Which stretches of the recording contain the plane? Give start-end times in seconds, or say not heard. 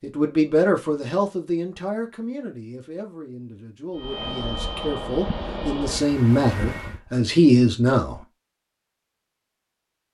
4.0-7.0.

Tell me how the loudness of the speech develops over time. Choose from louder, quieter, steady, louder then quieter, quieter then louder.
quieter then louder.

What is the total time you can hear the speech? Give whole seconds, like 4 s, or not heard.
8 s.